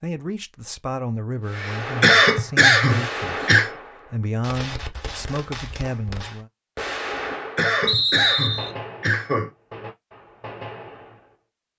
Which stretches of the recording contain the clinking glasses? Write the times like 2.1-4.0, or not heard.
not heard.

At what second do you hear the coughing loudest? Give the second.
2 s.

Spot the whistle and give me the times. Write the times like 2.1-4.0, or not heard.
7.8-8.8.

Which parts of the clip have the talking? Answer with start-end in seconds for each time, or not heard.
0.0-6.5.